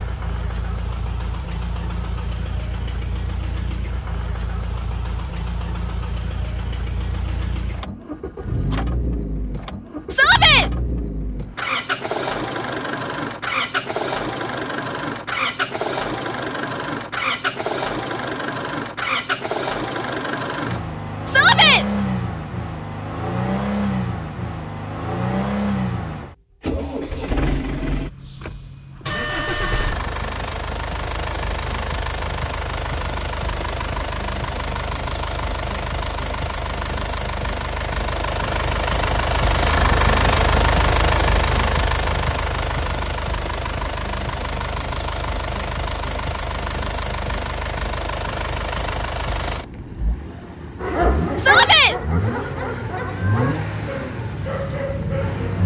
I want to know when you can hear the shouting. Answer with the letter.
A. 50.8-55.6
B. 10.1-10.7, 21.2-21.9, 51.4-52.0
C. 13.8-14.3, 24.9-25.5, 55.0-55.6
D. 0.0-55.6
B.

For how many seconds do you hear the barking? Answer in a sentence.
The barking can be heard for 5 seconds in total.